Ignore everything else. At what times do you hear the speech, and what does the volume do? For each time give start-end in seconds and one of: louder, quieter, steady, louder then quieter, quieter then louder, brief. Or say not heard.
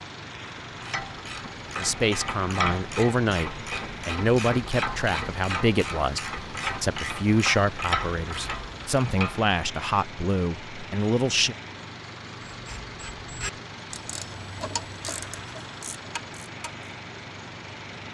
1.8-11.6 steady.